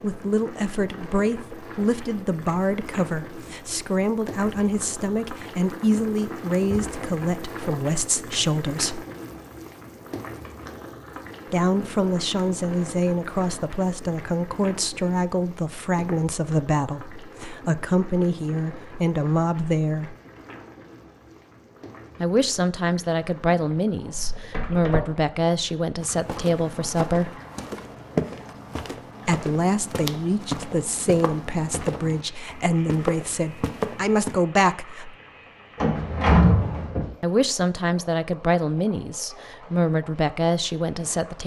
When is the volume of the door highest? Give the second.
36 s.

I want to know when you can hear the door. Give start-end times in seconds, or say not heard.
6.2-6.9, 24.4-25.0, 35.8-37.0.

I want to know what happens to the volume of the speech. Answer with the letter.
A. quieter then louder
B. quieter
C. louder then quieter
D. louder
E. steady
E.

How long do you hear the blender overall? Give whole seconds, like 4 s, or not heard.
not heard.